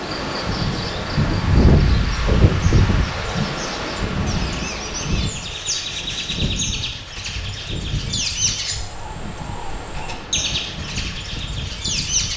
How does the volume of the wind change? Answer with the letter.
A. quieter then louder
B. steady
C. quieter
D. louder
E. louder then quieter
C.